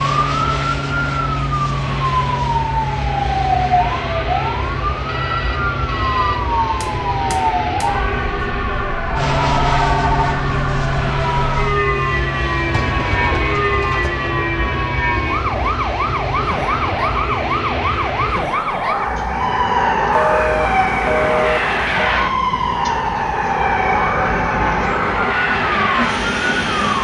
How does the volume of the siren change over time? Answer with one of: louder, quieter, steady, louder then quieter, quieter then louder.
steady.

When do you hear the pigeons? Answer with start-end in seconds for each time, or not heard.
12.7-14.3.